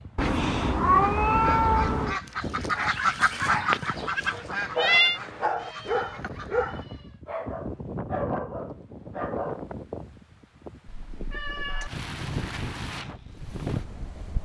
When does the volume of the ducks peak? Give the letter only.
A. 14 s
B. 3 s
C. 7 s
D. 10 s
B.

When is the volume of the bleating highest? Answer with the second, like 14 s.
5 s.